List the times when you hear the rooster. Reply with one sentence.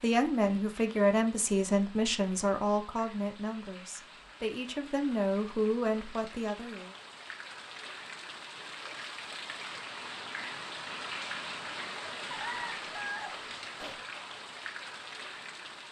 The rooster can be heard from 12.3 to 14.0 s.